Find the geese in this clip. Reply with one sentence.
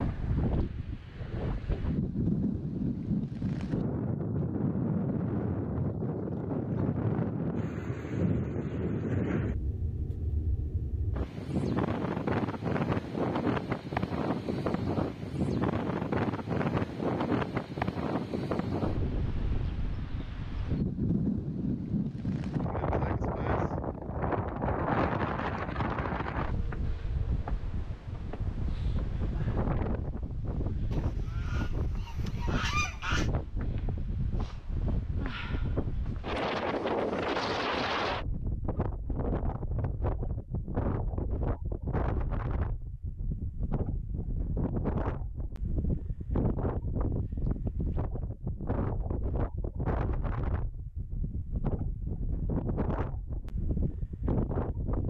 You can hear the geese from 30.9 to 33.3 s.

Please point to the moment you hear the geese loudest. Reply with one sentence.
The volume of the geese peaks at 33 seconds.